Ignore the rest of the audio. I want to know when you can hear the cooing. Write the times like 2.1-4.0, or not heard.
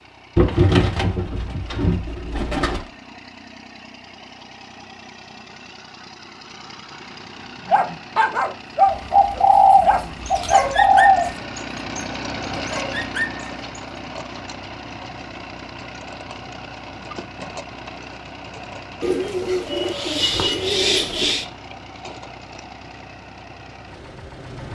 0.3-2.9, 8.8-11.3, 19.0-21.4.